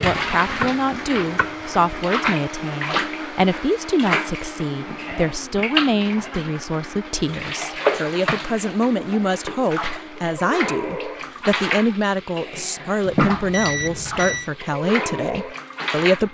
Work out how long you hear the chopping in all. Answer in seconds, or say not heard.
2 s.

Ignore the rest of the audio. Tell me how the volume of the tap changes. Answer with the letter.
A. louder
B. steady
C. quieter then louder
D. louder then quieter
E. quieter
B.